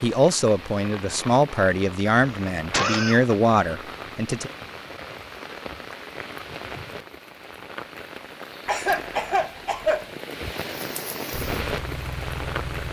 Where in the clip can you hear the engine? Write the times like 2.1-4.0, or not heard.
11.4-12.8.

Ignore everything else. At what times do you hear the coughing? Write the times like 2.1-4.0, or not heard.
2.2-3.2, 8.7-10.1.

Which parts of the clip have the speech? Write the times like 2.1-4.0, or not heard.
0.0-4.5.